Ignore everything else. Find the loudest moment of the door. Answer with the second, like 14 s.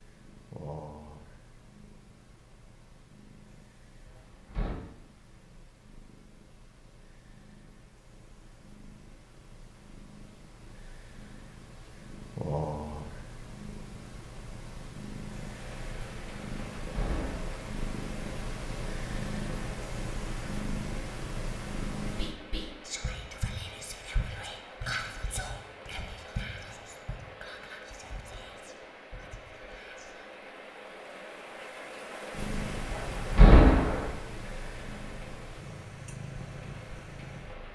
34 s.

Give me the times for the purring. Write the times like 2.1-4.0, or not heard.
0.0-22.3, 32.3-37.6.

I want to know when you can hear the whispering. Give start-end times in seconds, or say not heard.
22.1-30.2.